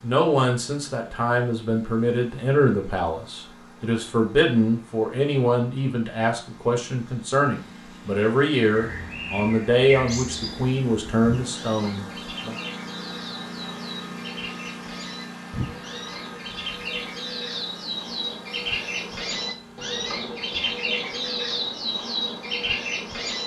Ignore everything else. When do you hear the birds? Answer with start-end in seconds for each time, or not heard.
8.7-23.4.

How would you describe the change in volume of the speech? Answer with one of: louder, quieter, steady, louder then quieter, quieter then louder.
steady.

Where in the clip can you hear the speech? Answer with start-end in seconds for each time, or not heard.
0.0-12.6.